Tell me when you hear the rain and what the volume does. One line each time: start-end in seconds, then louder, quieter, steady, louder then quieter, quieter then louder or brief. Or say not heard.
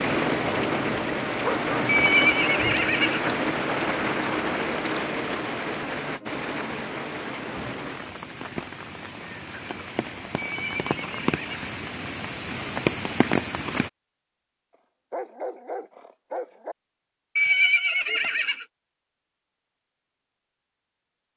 0.0-13.9 quieter then louder.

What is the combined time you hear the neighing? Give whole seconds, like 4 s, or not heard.
4 s.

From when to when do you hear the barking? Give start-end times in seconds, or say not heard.
1.4-2.3, 15.1-16.8.